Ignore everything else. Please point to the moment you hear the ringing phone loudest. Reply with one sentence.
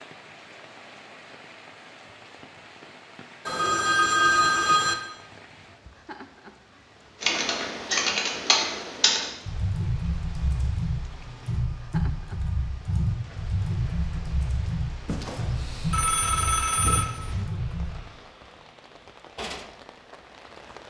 The volume of the ringing phone peaks at 4 seconds.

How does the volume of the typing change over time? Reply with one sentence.
The loudness of the typing goes down.